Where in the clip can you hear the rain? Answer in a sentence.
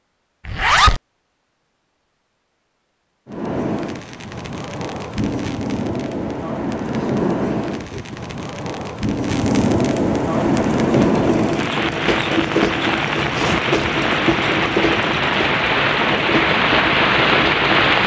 The rain can be heard from 3.2 to 18.0 s.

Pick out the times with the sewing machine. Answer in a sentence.
The sewing machine can be heard from 10.3 to 18.0 s.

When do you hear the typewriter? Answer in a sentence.
You can't hear the typewriter here.